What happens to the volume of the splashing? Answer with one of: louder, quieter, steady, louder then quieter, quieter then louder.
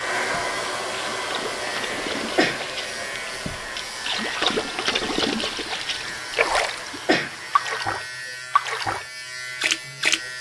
louder.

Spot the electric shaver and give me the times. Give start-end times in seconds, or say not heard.
0.0-10.3.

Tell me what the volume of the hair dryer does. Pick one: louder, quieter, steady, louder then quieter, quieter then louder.
quieter.